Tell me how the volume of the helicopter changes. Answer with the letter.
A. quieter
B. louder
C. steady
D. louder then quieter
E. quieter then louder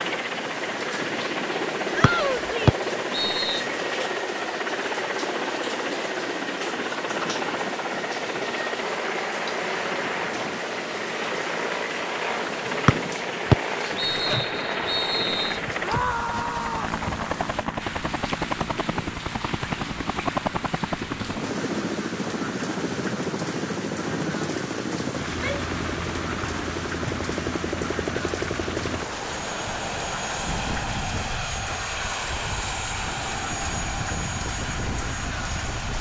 C.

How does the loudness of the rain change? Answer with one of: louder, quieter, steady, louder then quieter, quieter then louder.
steady.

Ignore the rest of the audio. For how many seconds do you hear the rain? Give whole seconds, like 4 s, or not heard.
36 s.